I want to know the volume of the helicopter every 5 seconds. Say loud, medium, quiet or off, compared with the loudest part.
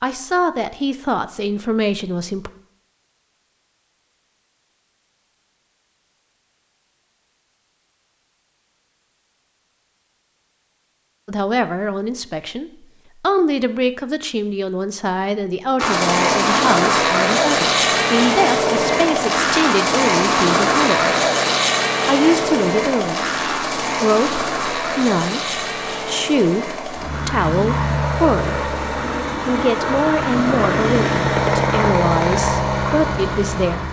off, off, off, loud, loud, medium, loud.